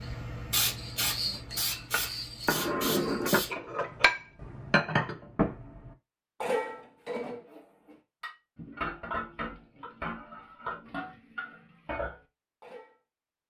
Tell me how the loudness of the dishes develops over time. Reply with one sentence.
The loudness of the dishes goes down.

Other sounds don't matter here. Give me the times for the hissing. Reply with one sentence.
You can hear the hissing from 0.0 to 3.5 s.